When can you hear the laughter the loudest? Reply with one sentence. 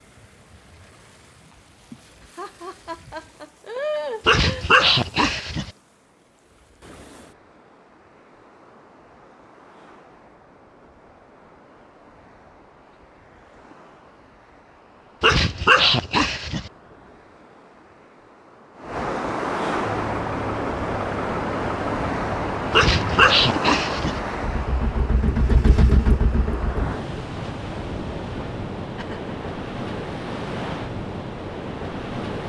The volume of the laughter peaks at 4 seconds.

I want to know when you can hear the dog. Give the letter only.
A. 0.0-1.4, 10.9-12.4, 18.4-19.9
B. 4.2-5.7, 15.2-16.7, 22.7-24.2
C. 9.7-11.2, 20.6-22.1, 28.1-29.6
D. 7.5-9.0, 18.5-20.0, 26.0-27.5
B.